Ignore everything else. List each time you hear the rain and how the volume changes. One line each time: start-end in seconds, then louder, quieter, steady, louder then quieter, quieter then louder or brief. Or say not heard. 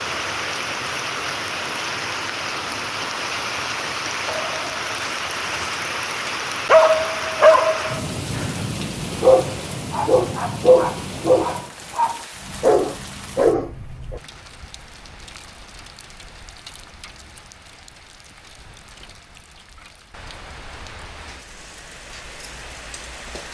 0.0-23.4 quieter.